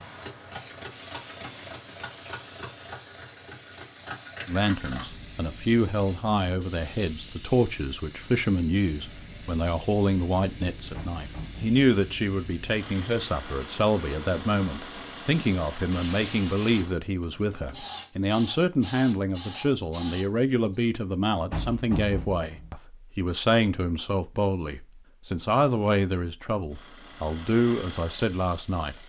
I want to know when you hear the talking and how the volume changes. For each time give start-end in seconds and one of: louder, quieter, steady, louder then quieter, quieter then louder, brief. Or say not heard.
4.5-29.0 steady.